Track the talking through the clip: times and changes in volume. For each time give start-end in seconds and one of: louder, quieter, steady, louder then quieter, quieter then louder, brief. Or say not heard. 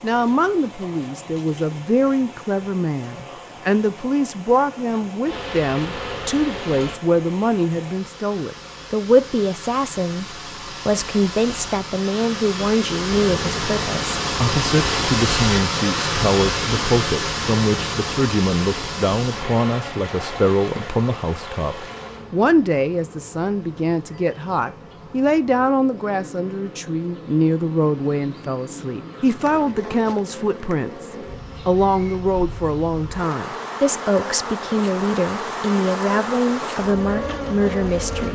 0.0-38.3 steady.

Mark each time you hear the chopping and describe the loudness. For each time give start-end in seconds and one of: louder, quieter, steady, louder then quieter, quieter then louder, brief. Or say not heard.
not heard.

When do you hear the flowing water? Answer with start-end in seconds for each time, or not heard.
0.0-22.3.